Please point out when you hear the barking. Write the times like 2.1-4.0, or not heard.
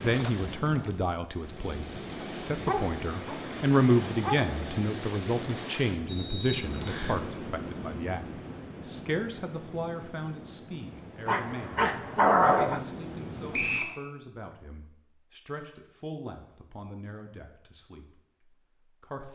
2.2-4.5, 11.2-12.8.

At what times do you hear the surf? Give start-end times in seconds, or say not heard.
0.0-13.8.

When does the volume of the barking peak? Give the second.
12 s.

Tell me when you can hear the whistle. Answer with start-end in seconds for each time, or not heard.
6.0-7.2, 13.5-13.9.